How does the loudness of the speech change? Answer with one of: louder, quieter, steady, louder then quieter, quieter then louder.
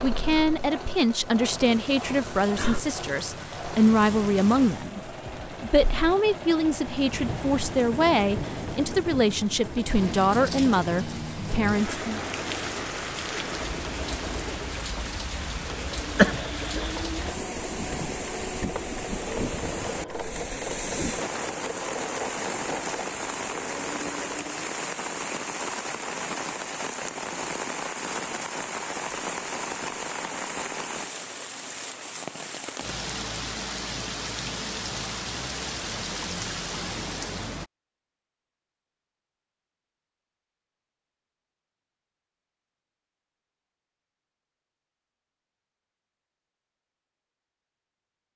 steady.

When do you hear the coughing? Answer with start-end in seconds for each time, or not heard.
16.1-17.0.